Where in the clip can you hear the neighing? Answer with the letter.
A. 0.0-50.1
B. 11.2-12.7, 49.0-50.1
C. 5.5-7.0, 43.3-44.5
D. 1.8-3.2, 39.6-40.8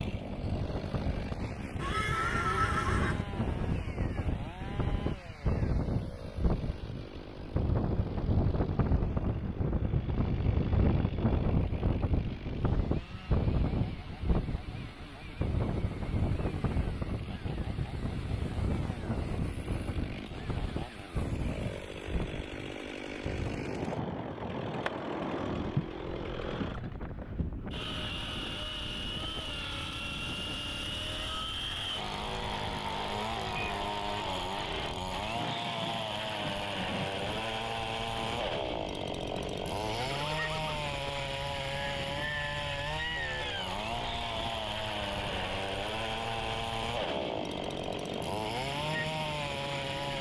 D.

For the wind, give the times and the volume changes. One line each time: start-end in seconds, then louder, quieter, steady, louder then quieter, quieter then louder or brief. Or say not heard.
0.0-50.1 quieter.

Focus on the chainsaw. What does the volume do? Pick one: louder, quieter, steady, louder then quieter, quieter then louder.
louder.